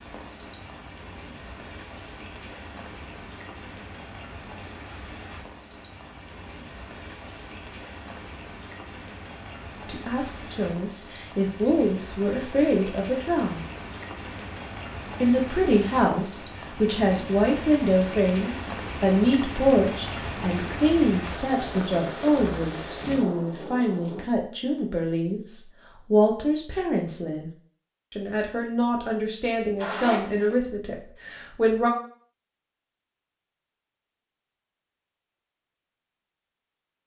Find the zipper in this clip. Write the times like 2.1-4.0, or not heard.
29.8-30.6.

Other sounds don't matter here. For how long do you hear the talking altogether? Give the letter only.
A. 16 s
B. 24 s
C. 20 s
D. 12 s
C.